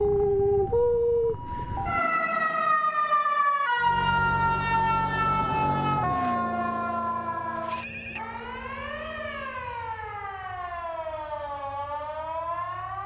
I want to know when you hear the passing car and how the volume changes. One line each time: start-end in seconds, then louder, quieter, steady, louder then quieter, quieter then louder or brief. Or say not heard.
3.8-9.7 quieter.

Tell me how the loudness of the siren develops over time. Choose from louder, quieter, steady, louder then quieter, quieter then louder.
quieter.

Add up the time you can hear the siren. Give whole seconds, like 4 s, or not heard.
13 s.